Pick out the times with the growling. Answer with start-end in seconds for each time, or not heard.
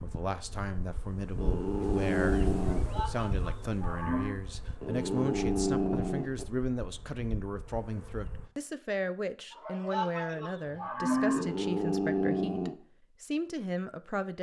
1.4-3.0, 4.8-6.5, 11.2-12.8.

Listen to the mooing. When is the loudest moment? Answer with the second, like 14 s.
11 s.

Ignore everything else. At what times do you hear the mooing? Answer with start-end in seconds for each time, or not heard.
2.7-4.4, 9.5-11.4.